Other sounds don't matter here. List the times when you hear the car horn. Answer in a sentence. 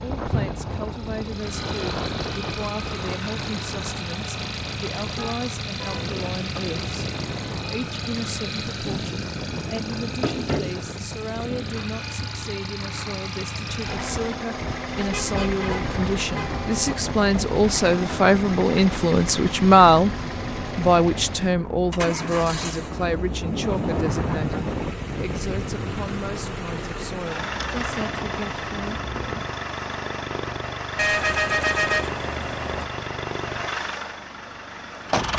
You can hear the car horn from 5.2 to 6.1 s, from 14.9 to 16.9 s and from 30.9 to 32.9 s.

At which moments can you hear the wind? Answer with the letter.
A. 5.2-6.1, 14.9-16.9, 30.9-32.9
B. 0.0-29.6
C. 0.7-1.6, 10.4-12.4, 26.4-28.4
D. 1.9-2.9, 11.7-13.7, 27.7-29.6
B.